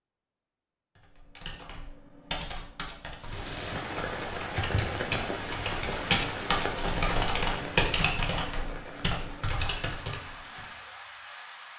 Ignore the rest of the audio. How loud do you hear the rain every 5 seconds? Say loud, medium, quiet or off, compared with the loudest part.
loud, loud, medium.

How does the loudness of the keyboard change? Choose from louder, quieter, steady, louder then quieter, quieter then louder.
louder then quieter.